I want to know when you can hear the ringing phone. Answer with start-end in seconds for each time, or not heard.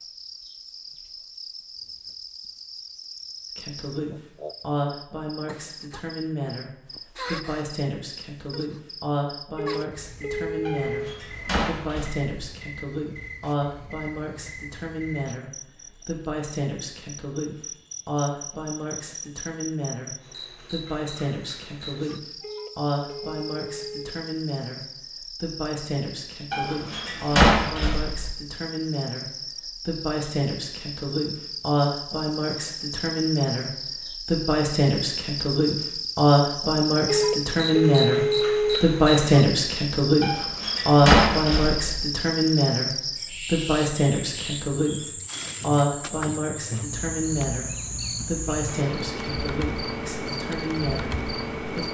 9.6-11.2, 22.4-24.1, 37.0-38.8.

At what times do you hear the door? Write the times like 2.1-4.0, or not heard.
10.7-12.3, 26.5-28.3, 40.2-42.0.